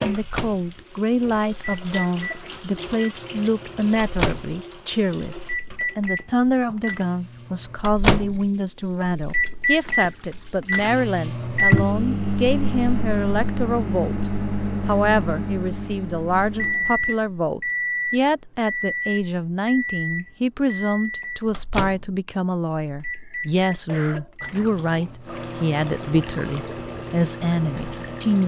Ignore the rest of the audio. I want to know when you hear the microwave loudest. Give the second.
12 s.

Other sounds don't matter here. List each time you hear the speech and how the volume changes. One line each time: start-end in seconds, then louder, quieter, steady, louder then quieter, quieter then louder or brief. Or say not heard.
0.0-28.4 steady.